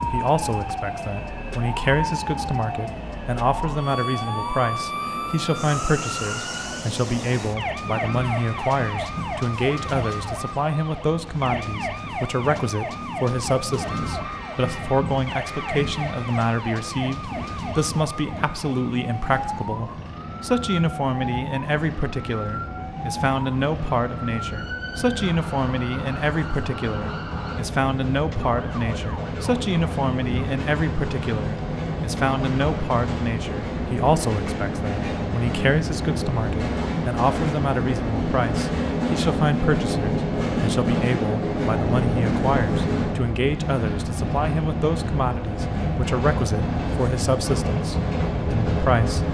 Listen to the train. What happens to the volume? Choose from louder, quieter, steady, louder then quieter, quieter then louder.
louder.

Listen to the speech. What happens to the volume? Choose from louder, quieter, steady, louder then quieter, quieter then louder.
steady.